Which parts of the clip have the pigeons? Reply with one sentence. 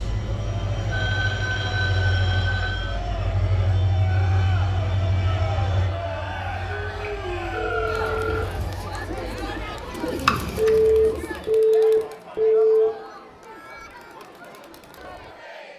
The pigeons can be heard from 7.8 to 11.6 s.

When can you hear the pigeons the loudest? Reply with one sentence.
The loudest moment of the pigeons is at 10 seconds.